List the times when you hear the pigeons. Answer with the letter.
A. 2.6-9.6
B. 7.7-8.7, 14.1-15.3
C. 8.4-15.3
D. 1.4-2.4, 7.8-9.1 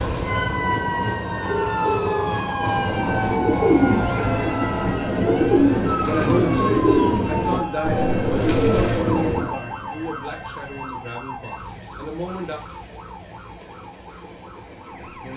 A.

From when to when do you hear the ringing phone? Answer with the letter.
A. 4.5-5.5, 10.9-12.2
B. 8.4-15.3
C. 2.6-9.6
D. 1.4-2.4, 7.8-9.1
D.